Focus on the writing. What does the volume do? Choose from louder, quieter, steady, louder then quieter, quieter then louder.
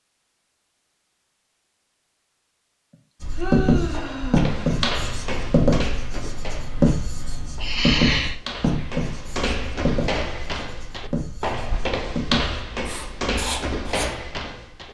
quieter.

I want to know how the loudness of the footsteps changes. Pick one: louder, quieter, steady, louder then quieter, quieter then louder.
quieter then louder.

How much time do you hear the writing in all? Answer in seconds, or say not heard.
11 s.